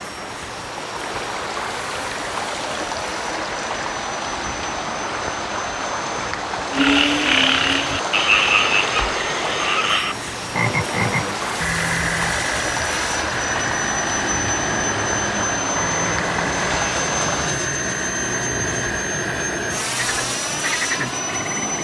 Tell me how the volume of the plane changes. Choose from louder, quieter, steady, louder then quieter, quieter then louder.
louder.